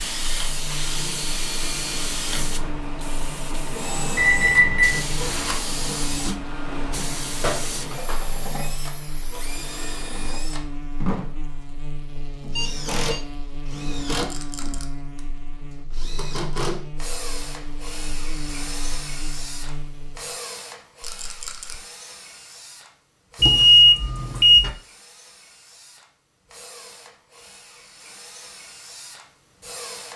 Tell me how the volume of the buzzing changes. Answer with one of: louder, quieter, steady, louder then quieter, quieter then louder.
steady.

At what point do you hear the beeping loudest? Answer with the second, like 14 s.
24 s.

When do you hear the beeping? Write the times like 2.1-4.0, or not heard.
4.2-5.5, 12.4-13.2, 23.4-24.7.